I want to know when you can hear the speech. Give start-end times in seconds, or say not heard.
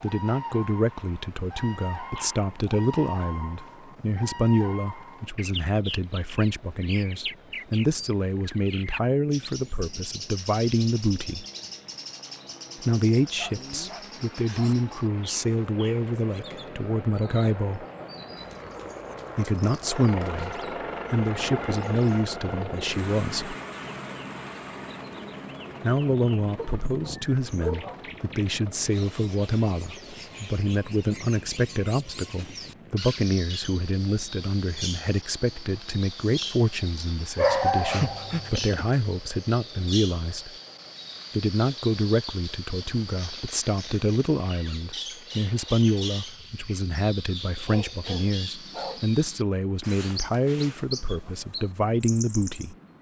0.0-11.4, 12.8-17.9, 19.4-23.6, 25.8-40.5, 41.4-52.9.